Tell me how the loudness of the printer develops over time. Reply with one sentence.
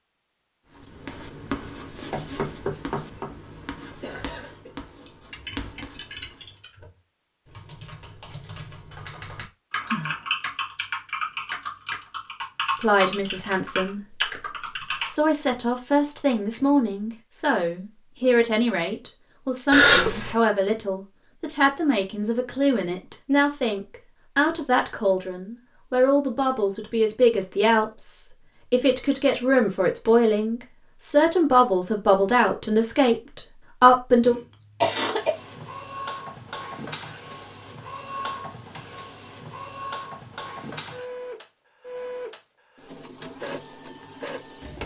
The loudness of the printer stays about the same.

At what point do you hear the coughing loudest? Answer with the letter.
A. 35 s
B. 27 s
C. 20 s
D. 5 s
C.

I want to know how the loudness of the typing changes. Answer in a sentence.
The volume of the typing goes up.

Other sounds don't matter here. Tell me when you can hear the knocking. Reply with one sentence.
You can hear the knocking from 1.9 to 3.3 s.